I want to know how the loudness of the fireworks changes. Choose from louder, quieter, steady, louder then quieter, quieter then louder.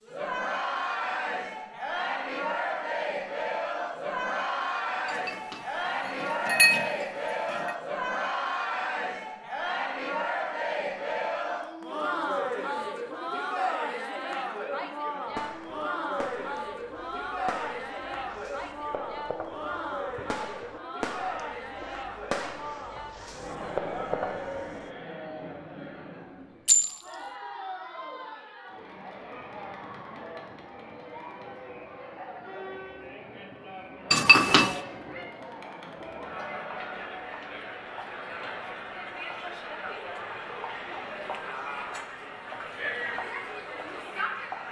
louder.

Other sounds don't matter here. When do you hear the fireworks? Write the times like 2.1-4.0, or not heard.
15.2-24.9.